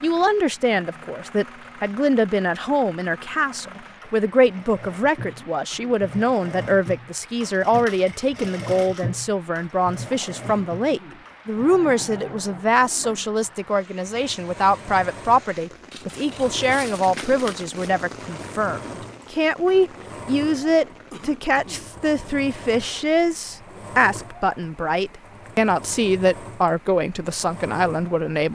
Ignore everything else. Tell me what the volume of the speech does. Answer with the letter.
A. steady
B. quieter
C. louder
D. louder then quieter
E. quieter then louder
A.